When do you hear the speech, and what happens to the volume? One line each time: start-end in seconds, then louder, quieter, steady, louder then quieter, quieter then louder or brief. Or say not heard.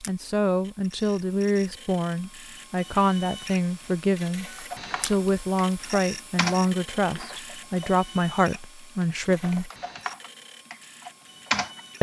0.1-9.7 steady.